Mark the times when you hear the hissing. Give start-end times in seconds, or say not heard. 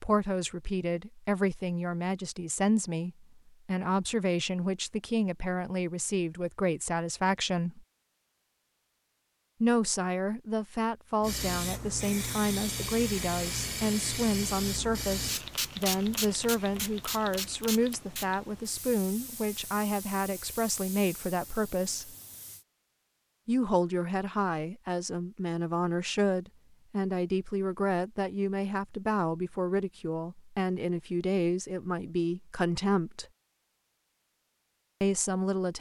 11.2-22.6.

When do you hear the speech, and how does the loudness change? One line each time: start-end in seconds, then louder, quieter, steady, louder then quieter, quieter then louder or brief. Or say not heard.
0.0-7.8 steady
9.6-22.1 steady
23.4-33.2 steady
35.0-35.7 brief.